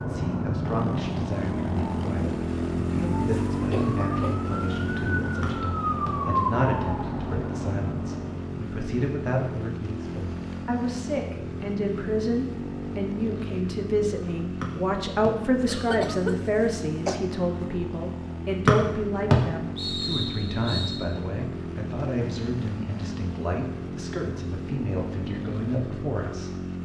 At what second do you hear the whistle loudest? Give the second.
19 s.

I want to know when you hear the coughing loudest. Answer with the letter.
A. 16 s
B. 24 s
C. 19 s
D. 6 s
A.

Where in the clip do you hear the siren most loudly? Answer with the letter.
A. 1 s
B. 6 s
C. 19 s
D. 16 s
B.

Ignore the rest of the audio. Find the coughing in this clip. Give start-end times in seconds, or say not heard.
3.6-4.3, 15.7-17.1.